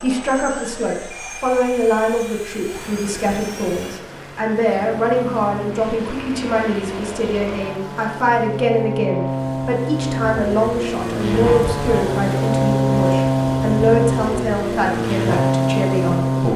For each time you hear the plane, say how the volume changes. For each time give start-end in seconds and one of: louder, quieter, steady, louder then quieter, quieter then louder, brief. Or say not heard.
0.0-16.5 louder.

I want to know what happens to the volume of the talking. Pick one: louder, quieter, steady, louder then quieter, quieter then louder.
steady.